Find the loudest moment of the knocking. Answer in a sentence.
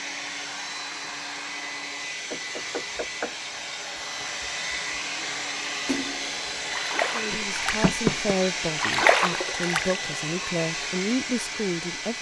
The volume of the knocking peaks at 8 seconds.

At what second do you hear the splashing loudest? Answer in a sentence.
The loudest moment of the splashing is at 9 seconds.